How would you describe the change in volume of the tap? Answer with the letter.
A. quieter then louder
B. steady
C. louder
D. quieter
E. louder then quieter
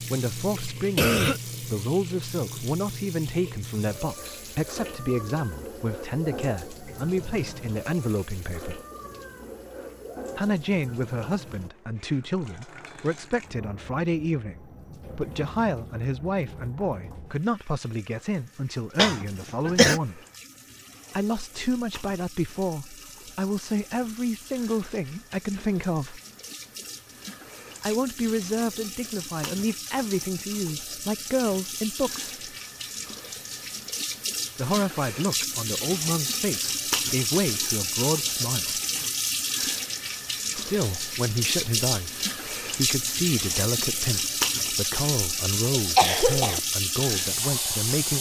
A.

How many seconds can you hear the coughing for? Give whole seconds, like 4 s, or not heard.
2 s.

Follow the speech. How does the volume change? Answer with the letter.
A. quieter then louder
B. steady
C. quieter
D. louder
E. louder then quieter
B.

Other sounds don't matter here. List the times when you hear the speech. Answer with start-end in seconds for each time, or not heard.
0.0-8.8, 10.3-20.2, 21.1-26.2, 27.8-32.3, 34.5-38.8, 40.5-48.1.